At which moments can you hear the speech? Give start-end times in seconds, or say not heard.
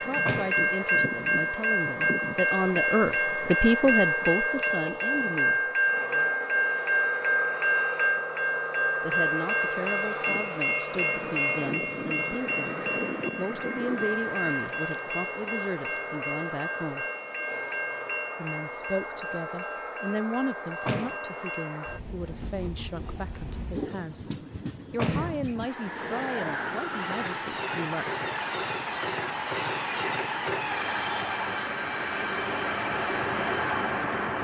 0.0-5.7, 9.0-17.1, 18.4-28.1.